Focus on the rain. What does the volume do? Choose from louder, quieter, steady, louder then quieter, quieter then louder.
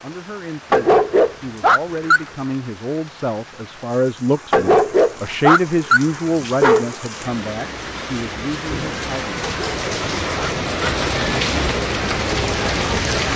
louder.